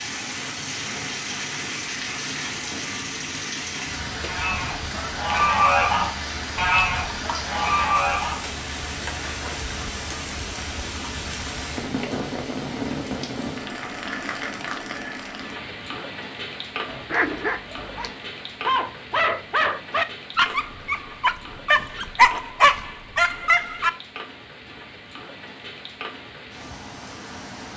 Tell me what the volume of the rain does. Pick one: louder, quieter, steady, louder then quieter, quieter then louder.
quieter.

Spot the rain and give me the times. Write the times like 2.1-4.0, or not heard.
0.0-27.7.